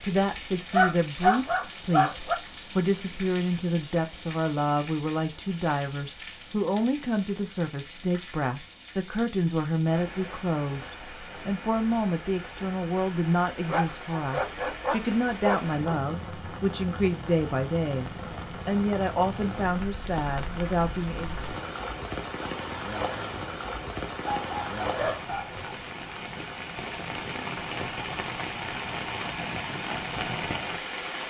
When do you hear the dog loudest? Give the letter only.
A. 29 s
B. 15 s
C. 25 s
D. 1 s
D.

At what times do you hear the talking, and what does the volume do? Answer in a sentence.
The talking can be heard from 0.0 to 21.4 s, at a steady volume.